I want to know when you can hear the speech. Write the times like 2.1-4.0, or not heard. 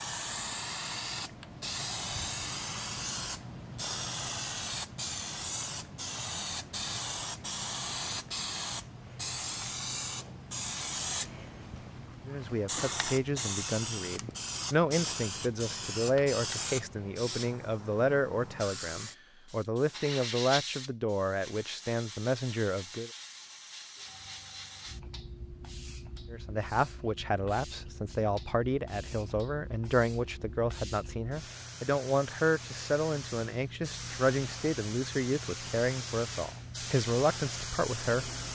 12.2-23.1, 26.3-38.3.